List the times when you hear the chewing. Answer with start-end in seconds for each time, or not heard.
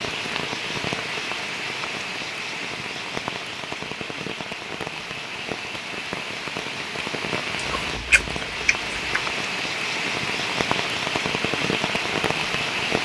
7.5-9.2.